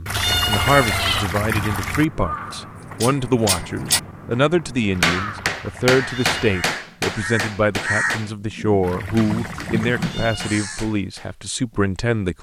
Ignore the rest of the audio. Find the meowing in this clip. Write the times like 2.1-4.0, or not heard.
0.1-1.2, 6.0-6.8, 10.0-10.6.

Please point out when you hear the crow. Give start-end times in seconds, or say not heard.
1.3-10.8.